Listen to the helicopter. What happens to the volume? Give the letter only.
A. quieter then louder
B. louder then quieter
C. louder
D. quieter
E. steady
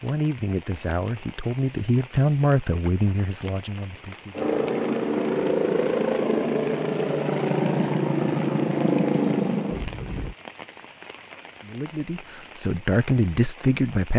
E.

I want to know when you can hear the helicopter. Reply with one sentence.
The helicopter can be heard from 4.3 to 10.3 s.